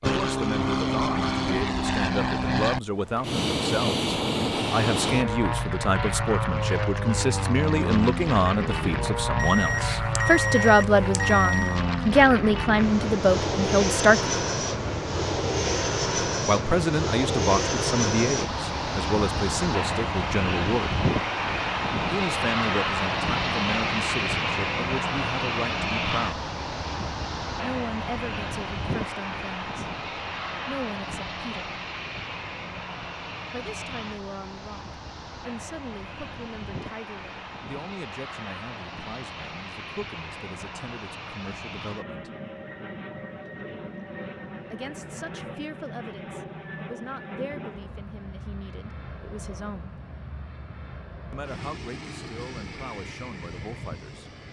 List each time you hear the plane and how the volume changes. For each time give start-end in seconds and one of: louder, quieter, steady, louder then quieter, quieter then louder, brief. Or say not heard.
0.0-54.4 quieter.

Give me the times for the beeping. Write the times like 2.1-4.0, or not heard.
9.3-11.8.